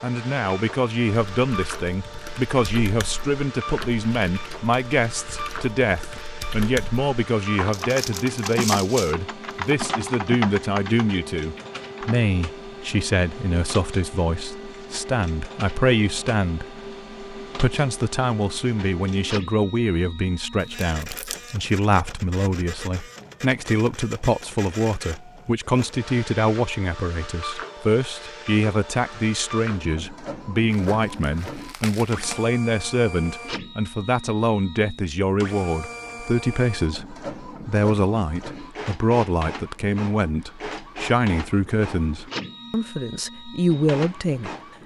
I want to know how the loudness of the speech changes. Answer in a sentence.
The volume of the speech stays about the same.